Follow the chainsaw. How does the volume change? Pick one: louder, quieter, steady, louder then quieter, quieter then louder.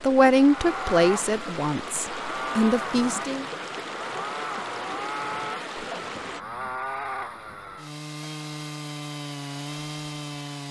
steady.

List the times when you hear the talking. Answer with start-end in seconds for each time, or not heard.
0.0-3.5.